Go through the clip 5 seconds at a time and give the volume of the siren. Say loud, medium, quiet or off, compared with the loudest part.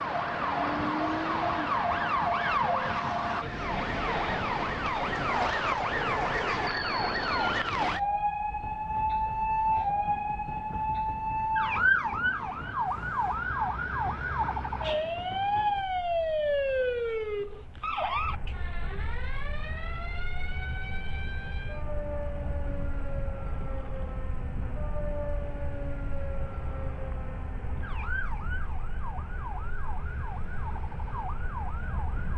loud, loud, loud, loud, quiet, quiet, quiet.